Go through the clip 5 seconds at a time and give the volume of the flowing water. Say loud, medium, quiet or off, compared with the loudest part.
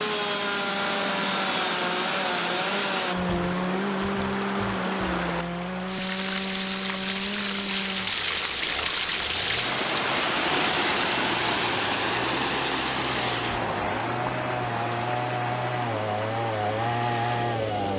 medium, loud, loud, medium.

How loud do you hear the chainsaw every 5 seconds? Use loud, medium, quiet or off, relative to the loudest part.
loud, medium, medium, loud.